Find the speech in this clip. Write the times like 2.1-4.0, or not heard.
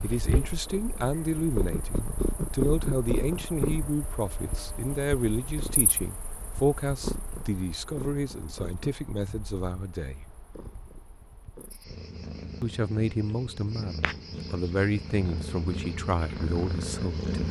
0.0-10.2, 12.6-17.4.